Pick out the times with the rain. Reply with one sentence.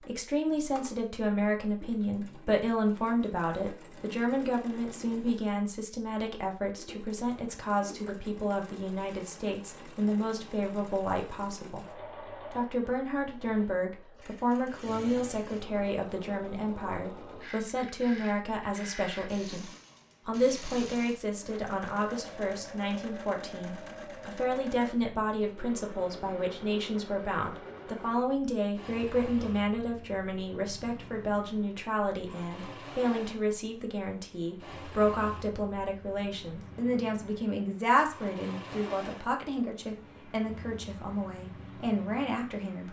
You can't hear the rain here.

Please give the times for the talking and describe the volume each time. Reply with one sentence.
The talking can be heard from 0.0 to 42.8 s, at a steady volume.